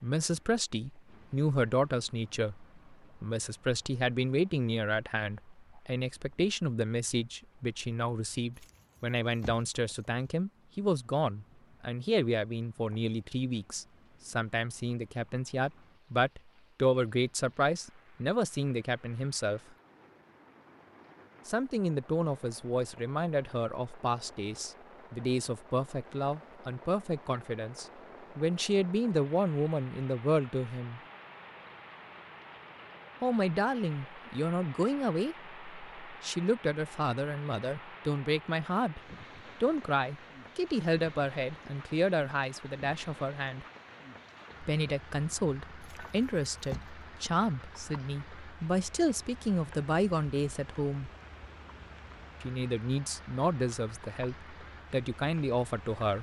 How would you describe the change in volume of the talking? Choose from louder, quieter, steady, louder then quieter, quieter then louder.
steady.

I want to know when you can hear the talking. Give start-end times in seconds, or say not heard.
0.0-19.6, 21.4-31.0, 33.2-39.0, 39.6-43.6, 44.6-51.1, 52.4-56.1.